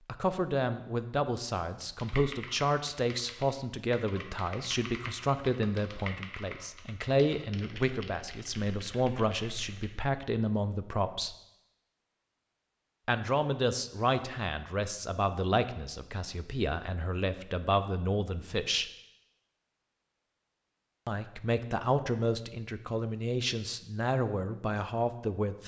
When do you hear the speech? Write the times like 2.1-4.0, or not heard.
0.1-11.3, 13.1-18.9, 21.1-25.6.